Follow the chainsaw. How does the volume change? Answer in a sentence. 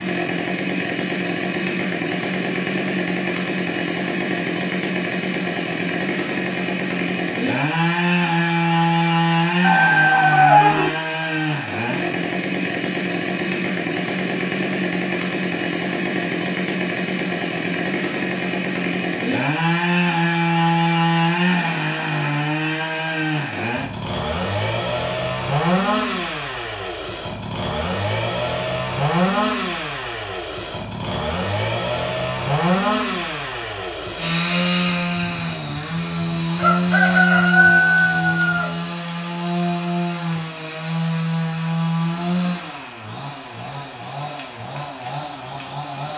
The volume of the chainsaw stays about the same.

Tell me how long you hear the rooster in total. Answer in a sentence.
You can hear the rooster for 5 seconds altogether.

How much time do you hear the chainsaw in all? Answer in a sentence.
You can hear the chainsaw for 46 seconds altogether.